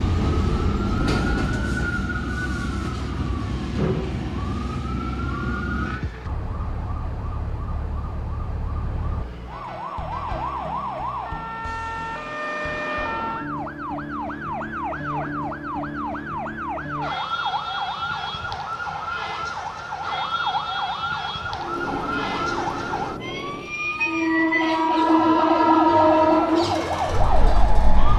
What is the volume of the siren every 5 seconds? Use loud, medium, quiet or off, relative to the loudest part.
loud, medium, loud, loud, loud, loud.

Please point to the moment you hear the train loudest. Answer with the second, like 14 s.
26 s.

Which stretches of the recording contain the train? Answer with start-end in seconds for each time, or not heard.
0.0-2.0, 21.6-28.1.